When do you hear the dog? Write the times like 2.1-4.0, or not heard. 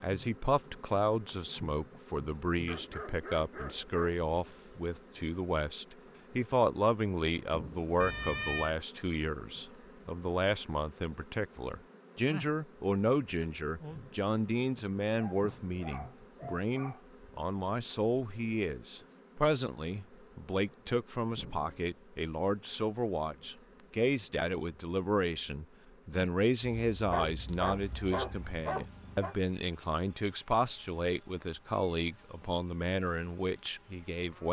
2.6-4.2, 15.2-17.0, 27.1-29.4.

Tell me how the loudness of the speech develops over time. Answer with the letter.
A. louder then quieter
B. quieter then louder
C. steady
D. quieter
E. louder
C.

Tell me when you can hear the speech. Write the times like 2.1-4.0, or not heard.
0.0-34.4.